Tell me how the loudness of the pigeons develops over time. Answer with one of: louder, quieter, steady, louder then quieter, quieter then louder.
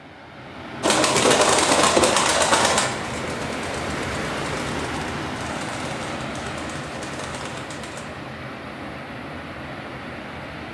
quieter.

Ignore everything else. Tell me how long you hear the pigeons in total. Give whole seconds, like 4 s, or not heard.
7 s.